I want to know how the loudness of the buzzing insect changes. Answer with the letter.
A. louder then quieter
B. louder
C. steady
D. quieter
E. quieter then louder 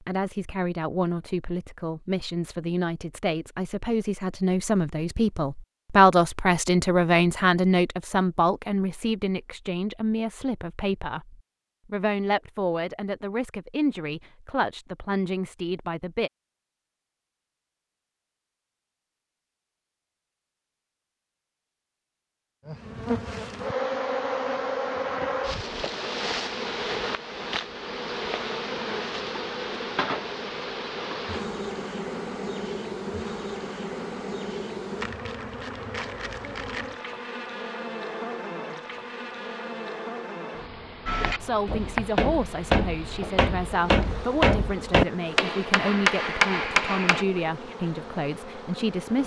D.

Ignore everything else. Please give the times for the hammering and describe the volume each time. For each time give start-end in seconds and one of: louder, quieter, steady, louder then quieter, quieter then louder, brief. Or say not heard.
41.0-47.2 louder.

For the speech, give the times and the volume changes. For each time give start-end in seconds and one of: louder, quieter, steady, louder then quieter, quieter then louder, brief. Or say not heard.
0.0-16.3 louder then quieter
41.4-49.2 steady.